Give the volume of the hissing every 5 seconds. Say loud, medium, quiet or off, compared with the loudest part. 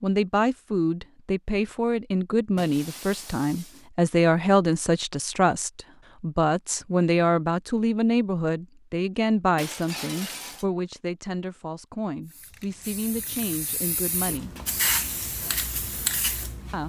off, off, loud, loud.